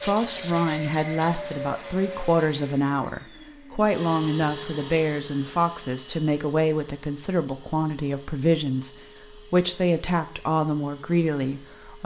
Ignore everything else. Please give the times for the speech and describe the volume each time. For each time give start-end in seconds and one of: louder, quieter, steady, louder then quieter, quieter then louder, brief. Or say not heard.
0.0-12.0 steady.